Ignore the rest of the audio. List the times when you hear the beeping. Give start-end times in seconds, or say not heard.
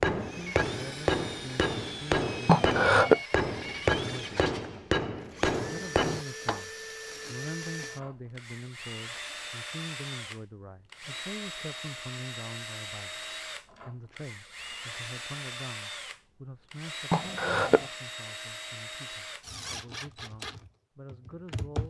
not heard.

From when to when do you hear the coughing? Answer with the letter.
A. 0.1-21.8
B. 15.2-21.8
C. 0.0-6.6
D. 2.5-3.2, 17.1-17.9
D.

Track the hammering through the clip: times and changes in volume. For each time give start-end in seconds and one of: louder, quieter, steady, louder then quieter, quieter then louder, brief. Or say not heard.
0.0-6.6 steady.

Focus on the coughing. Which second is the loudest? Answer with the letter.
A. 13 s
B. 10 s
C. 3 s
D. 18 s
C.